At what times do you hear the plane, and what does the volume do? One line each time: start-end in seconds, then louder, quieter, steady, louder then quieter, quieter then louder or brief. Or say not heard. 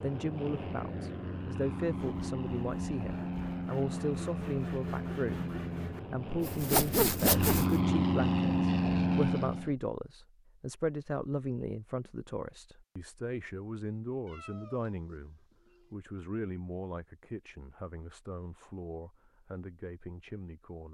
0.0-9.7 louder.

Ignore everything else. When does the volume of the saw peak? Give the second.
7 s.